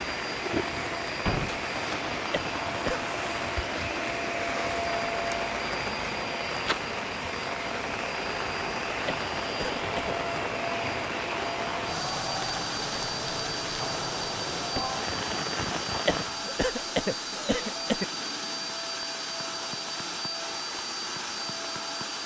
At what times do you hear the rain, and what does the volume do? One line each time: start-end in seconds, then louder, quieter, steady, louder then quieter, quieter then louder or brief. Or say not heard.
0.0-22.2 quieter.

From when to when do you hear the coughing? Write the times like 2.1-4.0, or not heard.
2.3-3.0, 9.1-10.2, 16.1-18.1.